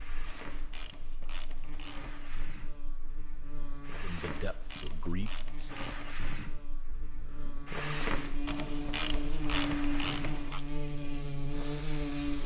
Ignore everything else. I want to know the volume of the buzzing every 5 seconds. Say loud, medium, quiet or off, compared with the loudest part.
quiet, loud, loud.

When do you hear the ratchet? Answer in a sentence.
The ratchet can be heard from 0.2 to 2.1 s, from 4.4 to 6.2 s and from 8.4 to 10.7 s.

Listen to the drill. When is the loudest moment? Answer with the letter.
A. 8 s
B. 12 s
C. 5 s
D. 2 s
A.